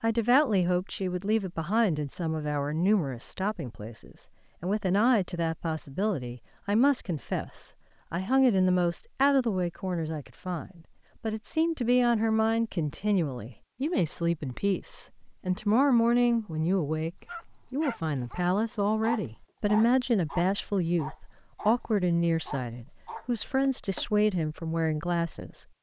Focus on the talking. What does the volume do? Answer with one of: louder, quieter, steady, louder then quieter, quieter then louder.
steady.